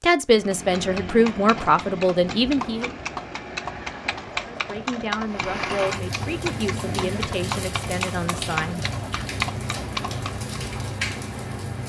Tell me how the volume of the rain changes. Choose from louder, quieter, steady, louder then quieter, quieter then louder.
steady.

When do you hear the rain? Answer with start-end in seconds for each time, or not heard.
5.2-11.8.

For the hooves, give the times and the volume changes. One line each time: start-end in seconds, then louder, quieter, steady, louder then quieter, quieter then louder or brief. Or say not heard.
0.3-10.5 steady.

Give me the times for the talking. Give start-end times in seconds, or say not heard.
0.0-2.9, 4.4-8.8.